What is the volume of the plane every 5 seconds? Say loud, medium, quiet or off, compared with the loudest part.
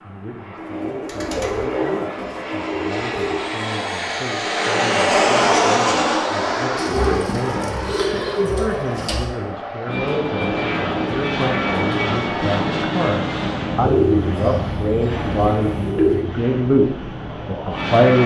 medium, loud, loud, medium.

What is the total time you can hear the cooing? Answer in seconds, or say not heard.
8 s.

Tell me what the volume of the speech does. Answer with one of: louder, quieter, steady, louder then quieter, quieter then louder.
louder.